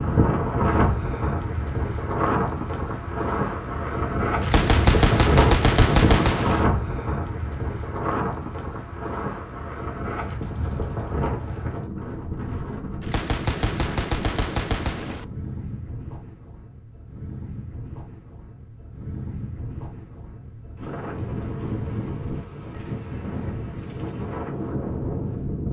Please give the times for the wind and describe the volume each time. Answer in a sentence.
The wind can be heard from 0.0 to 25.6 s, getting quieter then louder.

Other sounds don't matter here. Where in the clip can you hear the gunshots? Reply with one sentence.
The gunshots can be heard from 4.4 to 6.7 s and from 13.0 to 15.2 s.